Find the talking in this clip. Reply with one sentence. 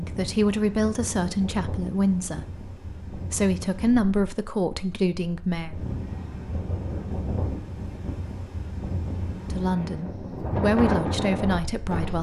You can hear the talking from 0.0 to 5.8 s and from 9.5 to 12.1 s.